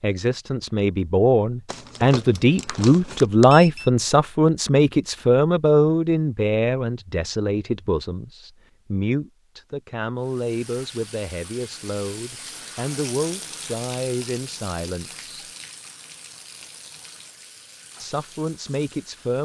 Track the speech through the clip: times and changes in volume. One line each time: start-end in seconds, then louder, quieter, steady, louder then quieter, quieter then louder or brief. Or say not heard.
0.0-15.4 quieter
17.9-19.3 brief.